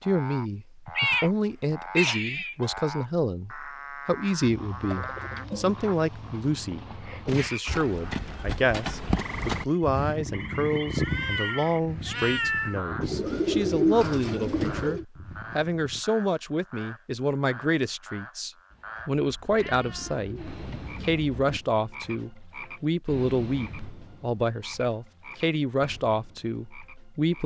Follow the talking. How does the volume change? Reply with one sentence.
The volume of the talking stays about the same.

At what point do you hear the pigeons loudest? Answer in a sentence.
The loudest moment of the pigeons is at 14 seconds.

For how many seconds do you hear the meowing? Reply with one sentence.
The meowing can be heard for 6 seconds in total.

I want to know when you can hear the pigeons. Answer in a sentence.
The pigeons can be heard from 4.8 to 5.8 s, from 13.0 to 15.1 s and from 19.6 to 21.6 s.